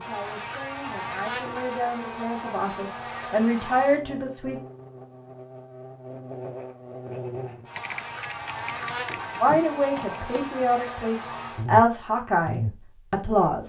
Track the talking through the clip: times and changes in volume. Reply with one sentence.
The talking can be heard from 0.0 to 4.6 s, getting louder; and from 9.4 to 13.6 s, getting louder then quieter.